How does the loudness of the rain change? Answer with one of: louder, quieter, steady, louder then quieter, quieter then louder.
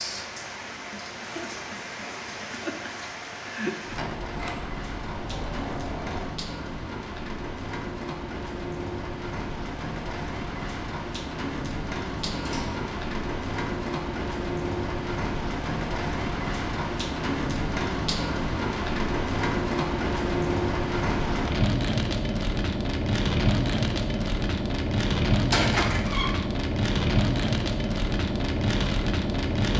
louder.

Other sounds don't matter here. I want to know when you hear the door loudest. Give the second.
26 s.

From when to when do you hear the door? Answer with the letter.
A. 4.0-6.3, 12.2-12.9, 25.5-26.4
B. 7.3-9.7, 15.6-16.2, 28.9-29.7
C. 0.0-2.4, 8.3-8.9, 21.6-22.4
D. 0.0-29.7
A.